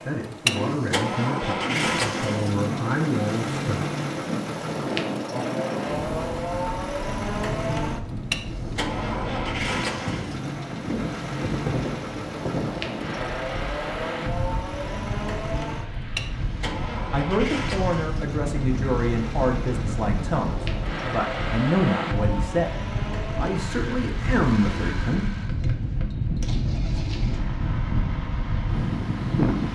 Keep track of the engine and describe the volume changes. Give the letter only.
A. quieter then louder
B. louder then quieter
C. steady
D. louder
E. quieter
E.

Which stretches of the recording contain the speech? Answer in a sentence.
The speech can be heard from 0.0 to 3.6 s and from 17.1 to 25.2 s.